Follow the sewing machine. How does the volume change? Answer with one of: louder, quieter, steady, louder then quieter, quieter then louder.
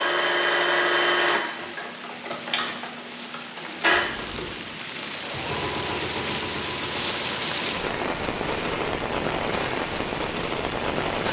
quieter.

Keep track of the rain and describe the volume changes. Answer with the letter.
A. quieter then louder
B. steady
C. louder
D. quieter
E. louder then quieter
C.